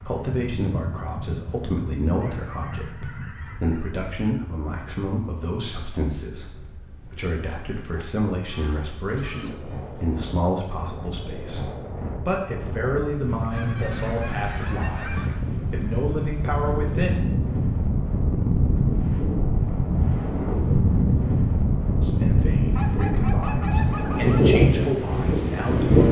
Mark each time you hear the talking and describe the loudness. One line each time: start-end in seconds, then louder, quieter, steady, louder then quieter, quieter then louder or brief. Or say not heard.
0.0-17.1 steady
21.9-26.0 louder then quieter.